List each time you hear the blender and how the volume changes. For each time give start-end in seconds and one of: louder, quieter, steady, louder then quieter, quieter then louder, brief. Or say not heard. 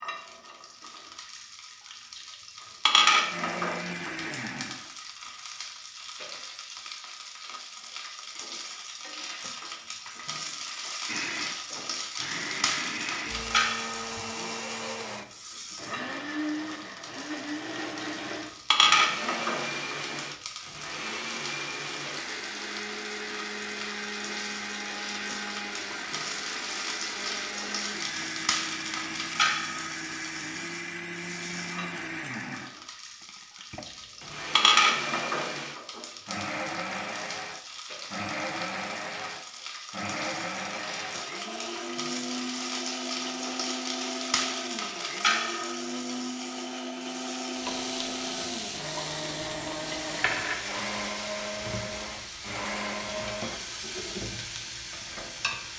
3.3-5.0 brief
11.1-53.5 steady.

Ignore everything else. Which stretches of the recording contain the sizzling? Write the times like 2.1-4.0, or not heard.
0.0-55.7.